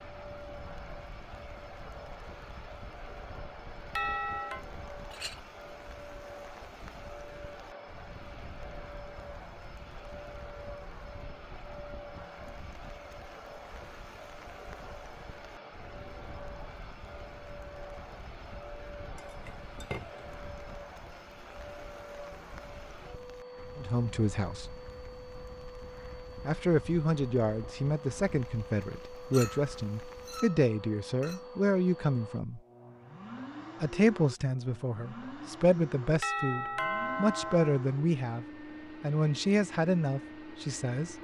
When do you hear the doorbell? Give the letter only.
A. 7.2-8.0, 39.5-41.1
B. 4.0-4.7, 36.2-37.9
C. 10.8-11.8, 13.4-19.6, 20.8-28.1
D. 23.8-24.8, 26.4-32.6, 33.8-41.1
B.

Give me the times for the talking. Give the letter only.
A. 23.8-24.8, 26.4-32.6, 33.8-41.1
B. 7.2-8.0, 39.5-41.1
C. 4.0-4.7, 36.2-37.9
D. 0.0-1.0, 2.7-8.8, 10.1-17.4
A.